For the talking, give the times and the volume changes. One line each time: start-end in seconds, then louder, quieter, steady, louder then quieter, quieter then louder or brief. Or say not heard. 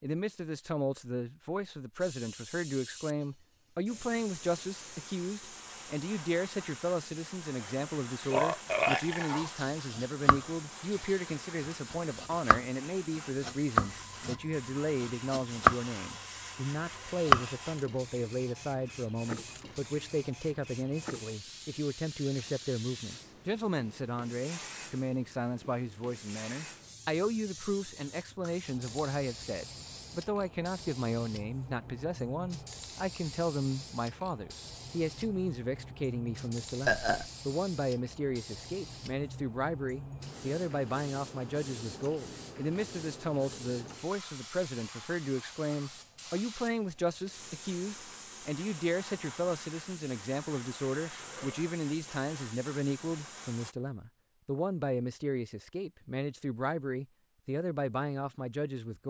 0.0-59.0 steady.